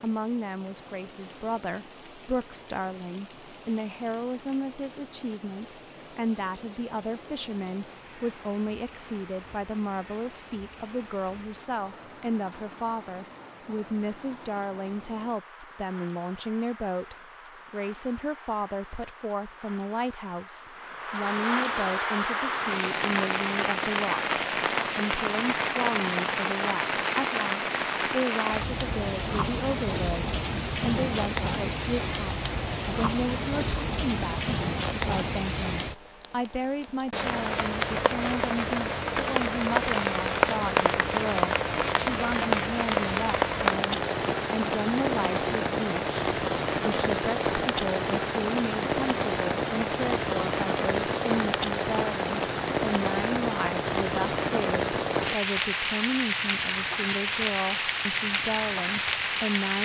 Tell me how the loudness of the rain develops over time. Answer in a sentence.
The loudness of the rain goes up.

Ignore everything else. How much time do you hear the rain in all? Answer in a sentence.
The rain can be heard for 60 seconds in total.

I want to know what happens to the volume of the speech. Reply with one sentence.
The loudness of the speech stays about the same.